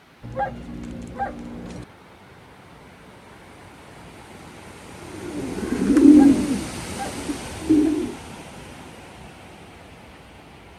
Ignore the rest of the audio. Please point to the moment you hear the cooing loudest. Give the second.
6 s.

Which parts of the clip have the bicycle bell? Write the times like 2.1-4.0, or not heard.
not heard.